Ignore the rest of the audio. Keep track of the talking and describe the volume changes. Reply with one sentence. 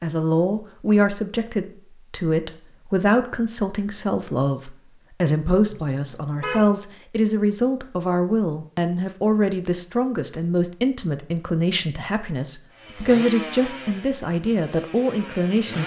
The loudness of the talking stays about the same.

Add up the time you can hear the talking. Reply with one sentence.
The talking can be heard for 16 seconds in total.